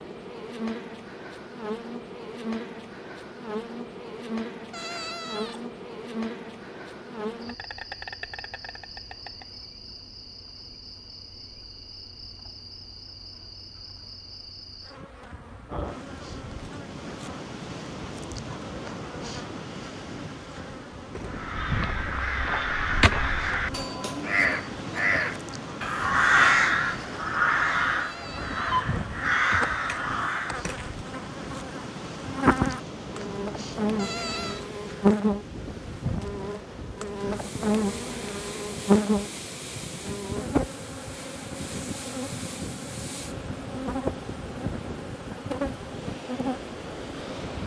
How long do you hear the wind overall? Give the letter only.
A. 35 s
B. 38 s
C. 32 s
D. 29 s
C.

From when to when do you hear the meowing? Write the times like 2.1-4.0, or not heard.
4.7-5.7, 27.9-28.7, 34.0-34.6.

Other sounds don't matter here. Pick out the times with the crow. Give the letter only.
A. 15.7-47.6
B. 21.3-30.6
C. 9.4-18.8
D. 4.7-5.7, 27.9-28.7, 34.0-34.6
B.